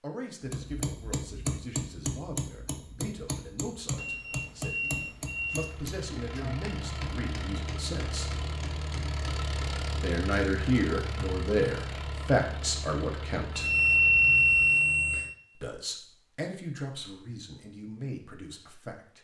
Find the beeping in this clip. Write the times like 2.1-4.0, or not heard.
4.0-5.7, 13.5-15.3.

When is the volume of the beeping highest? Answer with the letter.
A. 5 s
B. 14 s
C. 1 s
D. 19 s
B.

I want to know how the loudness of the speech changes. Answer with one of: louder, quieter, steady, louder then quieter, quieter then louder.
louder then quieter.